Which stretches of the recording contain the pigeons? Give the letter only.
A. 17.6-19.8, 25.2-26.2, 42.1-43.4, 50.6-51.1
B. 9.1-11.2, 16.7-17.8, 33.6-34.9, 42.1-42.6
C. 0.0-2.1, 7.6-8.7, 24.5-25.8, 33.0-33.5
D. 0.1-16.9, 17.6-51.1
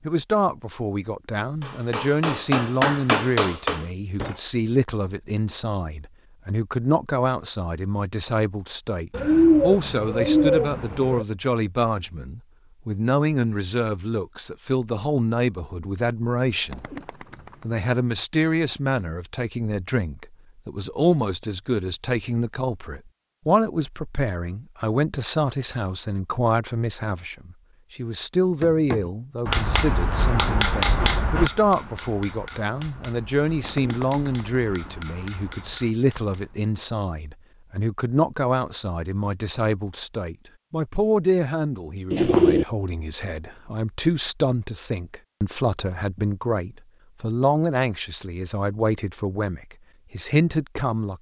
B.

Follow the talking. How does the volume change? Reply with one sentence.
The volume of the talking stays about the same.